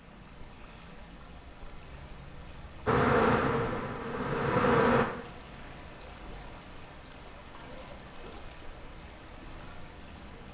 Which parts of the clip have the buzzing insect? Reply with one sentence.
You can hear the buzzing insect from 2.9 to 5.0 s.